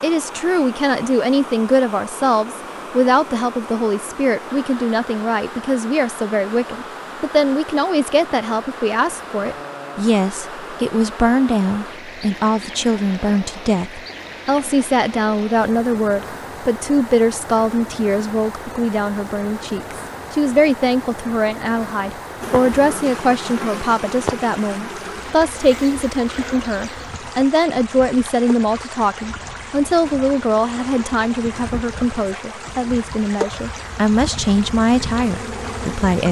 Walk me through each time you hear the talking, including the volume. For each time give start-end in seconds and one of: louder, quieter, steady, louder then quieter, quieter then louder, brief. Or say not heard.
0.0-36.2 steady.